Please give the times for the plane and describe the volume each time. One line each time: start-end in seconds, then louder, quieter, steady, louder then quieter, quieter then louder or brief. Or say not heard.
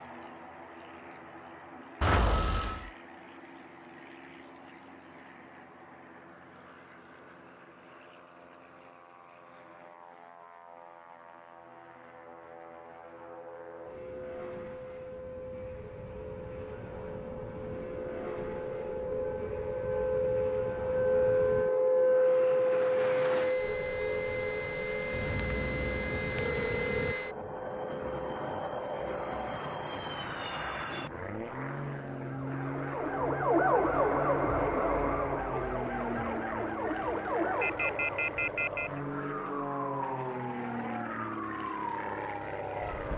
0.0-43.1 louder.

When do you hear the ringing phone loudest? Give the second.
2 s.